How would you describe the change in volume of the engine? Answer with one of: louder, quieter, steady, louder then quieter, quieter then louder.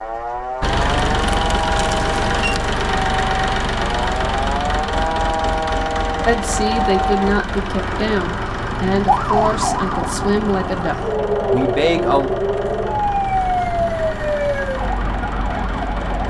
quieter.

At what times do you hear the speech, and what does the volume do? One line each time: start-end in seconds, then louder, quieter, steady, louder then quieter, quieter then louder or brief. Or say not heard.
6.2-12.3 steady.